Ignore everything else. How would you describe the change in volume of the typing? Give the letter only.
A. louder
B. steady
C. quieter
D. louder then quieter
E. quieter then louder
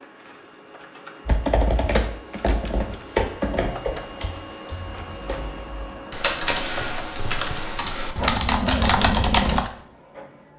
E.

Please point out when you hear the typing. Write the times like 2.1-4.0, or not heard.
1.2-9.7.